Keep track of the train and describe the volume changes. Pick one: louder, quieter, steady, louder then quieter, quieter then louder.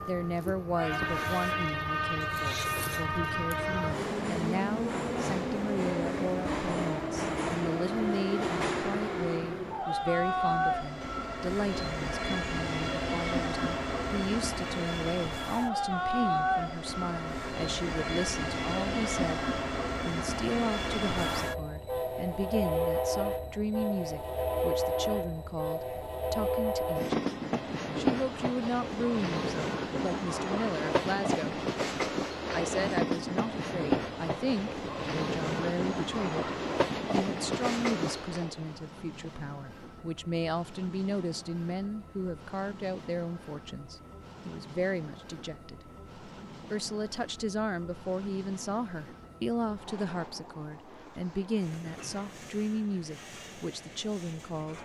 quieter.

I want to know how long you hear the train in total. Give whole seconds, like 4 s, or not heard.
55 s.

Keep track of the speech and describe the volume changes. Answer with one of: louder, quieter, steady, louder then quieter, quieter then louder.
steady.